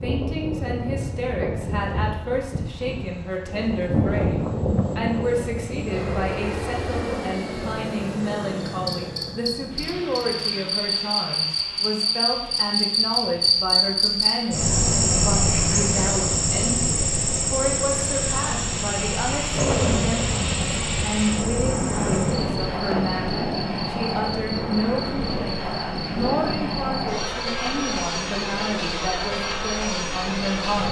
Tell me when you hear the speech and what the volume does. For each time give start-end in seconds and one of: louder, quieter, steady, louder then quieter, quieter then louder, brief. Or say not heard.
0.0-30.8 steady.